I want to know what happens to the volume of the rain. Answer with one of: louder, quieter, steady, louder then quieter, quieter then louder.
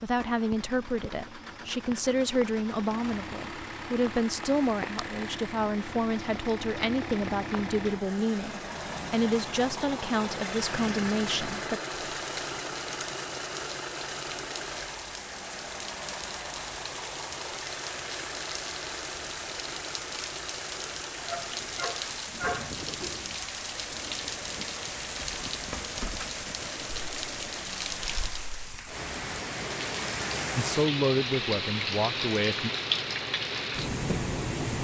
louder.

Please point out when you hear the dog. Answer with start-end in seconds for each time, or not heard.
21.2-23.3.